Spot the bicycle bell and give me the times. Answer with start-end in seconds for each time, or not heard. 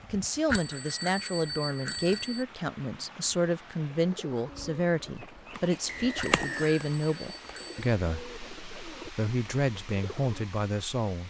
0.5-2.5, 6.2-7.8.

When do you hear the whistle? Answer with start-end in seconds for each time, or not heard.
5.8-6.8.